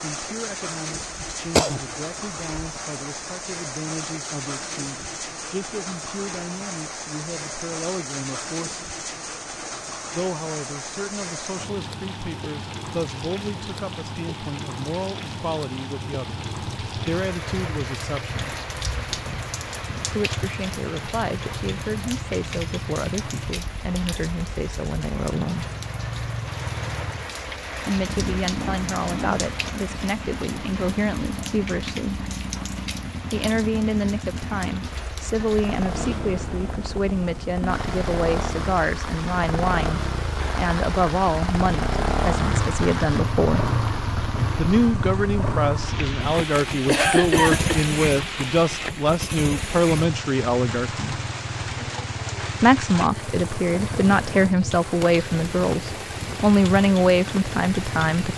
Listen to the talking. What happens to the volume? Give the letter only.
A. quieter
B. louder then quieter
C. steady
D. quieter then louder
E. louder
E.